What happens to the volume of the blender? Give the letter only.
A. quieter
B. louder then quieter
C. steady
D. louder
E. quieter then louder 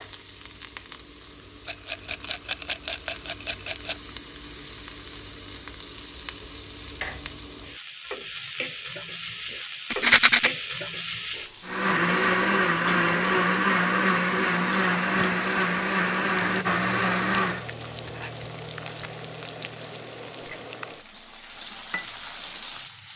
C.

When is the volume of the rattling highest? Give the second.
10 s.